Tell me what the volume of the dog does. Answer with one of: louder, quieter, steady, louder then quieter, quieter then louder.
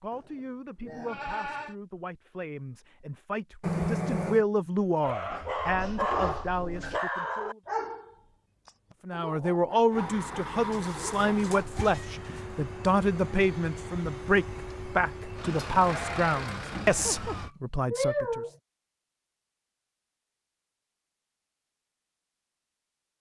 quieter.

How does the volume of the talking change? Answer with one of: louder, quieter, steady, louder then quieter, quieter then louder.
louder.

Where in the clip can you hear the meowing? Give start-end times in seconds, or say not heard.
3.6-4.5, 10.7-12.4, 17.2-18.5.